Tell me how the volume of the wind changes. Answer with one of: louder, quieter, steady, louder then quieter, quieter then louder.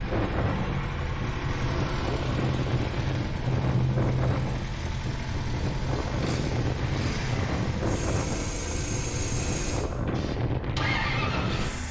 steady.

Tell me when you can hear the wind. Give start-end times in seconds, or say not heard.
0.0-11.8.